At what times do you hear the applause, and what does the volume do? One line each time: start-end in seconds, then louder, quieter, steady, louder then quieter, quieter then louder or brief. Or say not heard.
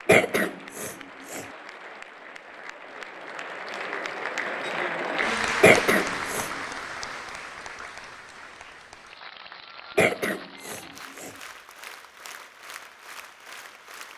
0.0-14.1 louder then quieter.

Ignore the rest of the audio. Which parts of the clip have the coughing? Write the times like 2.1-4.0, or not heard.
0.1-1.4, 5.6-6.5, 9.9-11.3.